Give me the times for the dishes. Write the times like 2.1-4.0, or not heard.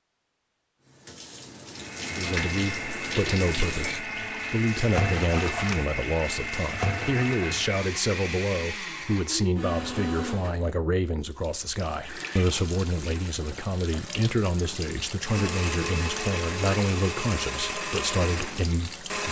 not heard.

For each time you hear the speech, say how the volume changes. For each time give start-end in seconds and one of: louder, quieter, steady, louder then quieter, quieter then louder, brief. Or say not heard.
2.1-19.2 steady.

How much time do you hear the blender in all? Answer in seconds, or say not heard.
13 s.